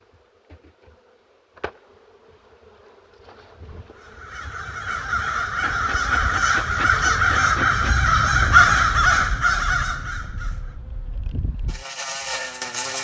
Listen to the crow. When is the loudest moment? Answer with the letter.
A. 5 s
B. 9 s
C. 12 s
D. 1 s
B.